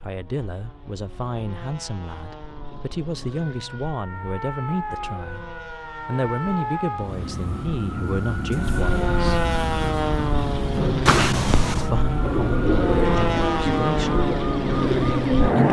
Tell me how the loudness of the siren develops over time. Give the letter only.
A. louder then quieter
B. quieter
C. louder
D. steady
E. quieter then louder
C.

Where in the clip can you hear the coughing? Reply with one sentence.
You can hear the coughing from 11.1 to 11.9 s.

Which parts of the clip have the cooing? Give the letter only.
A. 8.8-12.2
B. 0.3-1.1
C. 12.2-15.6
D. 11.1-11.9
C.